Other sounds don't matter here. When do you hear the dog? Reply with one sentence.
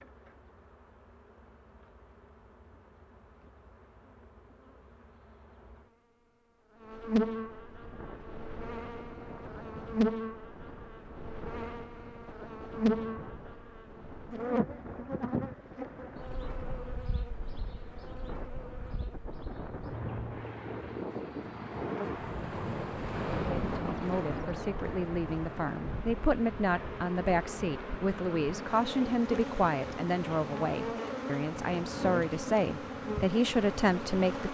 The dog can't be heard in this clip.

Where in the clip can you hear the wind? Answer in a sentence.
You can hear the wind from 7.8 to 34.4 s.